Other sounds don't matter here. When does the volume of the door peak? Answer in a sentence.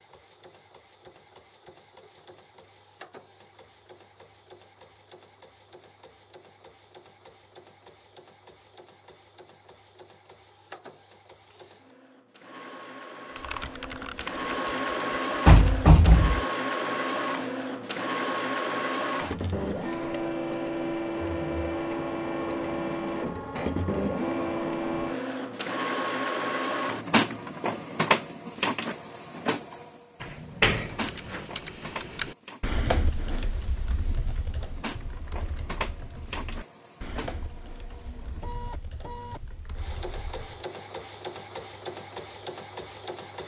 The volume of the door peaks at 16 seconds.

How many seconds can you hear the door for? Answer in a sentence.
You can hear the door for 2 seconds altogether.